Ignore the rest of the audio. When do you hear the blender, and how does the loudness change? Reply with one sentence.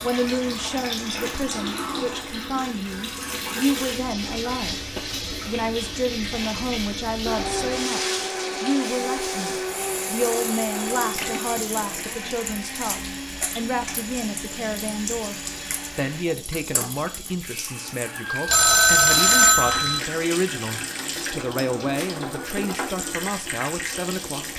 You can hear the blender from 7.2 to 16.2 s, getting quieter.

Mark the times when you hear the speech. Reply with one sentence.
You can hear the speech from 0.0 to 15.3 s and from 15.9 to 24.5 s.